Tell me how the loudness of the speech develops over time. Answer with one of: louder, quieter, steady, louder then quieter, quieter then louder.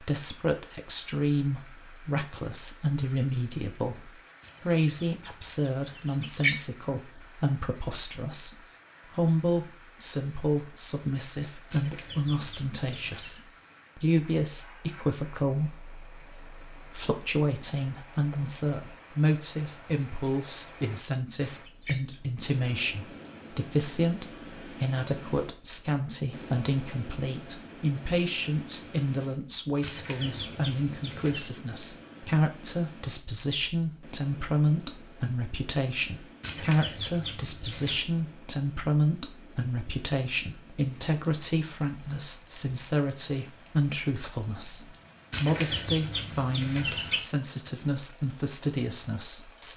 steady.